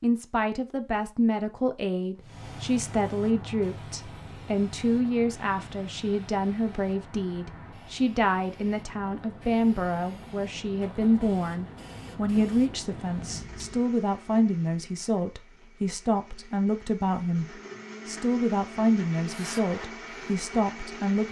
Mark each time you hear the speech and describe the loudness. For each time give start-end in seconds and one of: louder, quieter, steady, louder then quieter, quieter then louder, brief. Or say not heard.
0.0-21.2 steady.